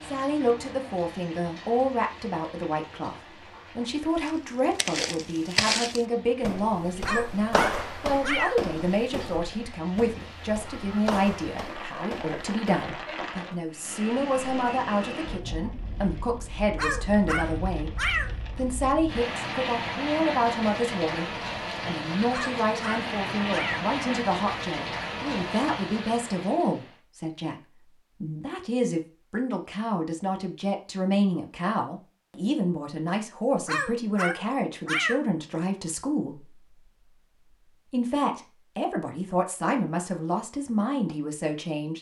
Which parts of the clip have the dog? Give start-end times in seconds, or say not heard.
7.0-8.6, 16.8-18.4, 22.3-23.9, 33.6-35.2.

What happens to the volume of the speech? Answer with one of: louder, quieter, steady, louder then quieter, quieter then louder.
steady.